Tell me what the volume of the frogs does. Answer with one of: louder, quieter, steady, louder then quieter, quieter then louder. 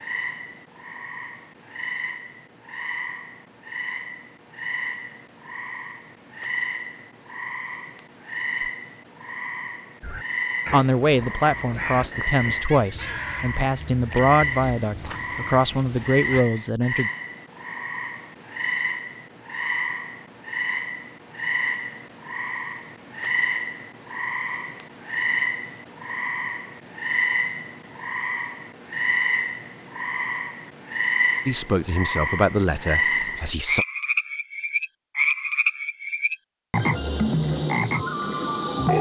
louder.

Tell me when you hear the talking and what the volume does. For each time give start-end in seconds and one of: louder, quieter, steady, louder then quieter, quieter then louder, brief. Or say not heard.
10.7-17.1 steady
31.4-33.9 brief.